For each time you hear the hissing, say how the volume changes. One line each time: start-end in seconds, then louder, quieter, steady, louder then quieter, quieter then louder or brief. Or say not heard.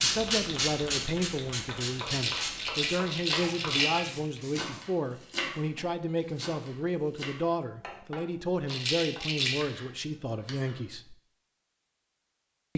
0.0-4.7 quieter.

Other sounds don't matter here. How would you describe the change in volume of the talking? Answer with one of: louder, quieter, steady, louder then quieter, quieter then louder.
steady.